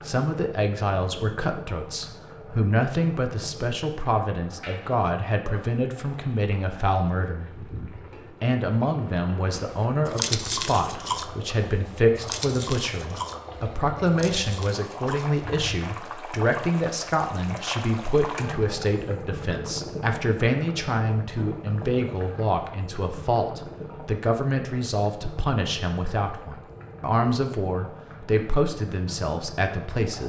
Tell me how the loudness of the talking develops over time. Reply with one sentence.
The volume of the talking stays about the same.